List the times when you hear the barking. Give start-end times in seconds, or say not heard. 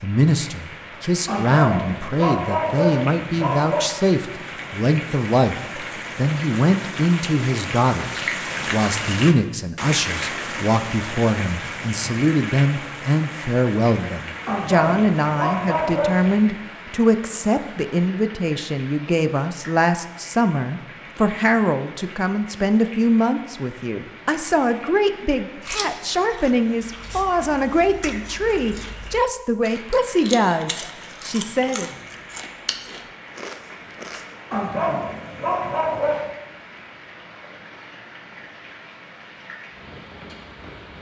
1.2-3.9, 14.4-16.5, 34.5-36.3.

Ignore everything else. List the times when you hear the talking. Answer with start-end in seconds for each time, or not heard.
0.0-31.9.